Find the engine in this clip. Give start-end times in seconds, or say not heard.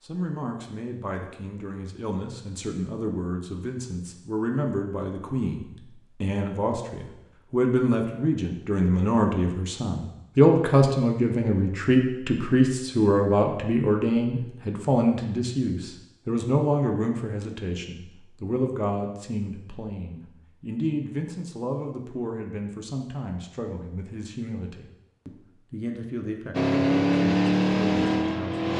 26.5-28.7.